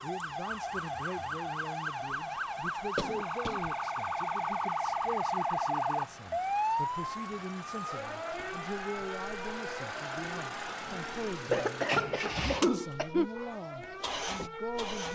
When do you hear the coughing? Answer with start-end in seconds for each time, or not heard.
3.0-3.7, 11.5-13.3.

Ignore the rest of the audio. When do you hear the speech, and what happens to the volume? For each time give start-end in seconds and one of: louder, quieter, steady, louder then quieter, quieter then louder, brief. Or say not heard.
0.0-15.0 steady.